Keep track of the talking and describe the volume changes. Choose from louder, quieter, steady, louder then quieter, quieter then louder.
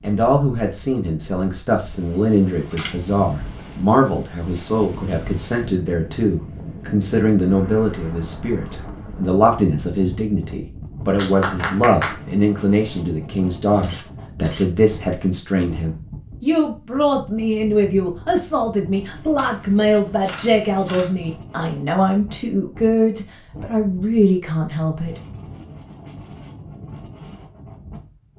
steady.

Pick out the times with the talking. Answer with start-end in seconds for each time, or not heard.
0.0-25.2.